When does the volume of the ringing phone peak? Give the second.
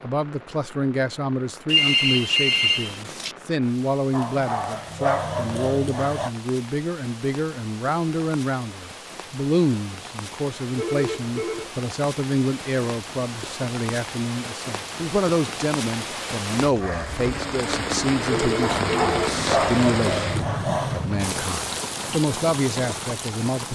2 s.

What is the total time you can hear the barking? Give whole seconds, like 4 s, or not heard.
5 s.